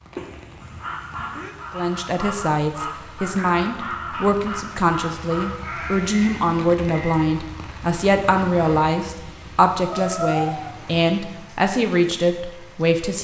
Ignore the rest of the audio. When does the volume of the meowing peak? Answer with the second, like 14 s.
10 s.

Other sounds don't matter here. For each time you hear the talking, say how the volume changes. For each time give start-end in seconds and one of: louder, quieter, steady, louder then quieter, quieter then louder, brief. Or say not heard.
1.7-13.1 steady.